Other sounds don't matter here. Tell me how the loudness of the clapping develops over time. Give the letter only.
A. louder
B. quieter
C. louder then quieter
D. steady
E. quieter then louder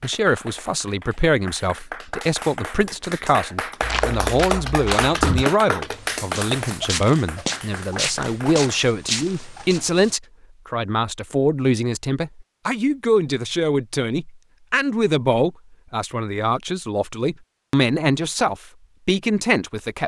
C.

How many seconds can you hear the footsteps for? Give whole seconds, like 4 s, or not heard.
6 s.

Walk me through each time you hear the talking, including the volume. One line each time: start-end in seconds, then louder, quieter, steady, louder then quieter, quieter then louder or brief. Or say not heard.
0.0-20.0 steady.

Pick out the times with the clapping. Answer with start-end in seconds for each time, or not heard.
0.0-8.8.